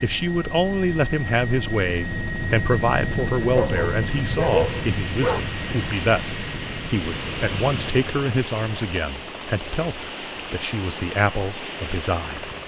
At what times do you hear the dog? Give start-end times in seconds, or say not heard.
3.5-5.4.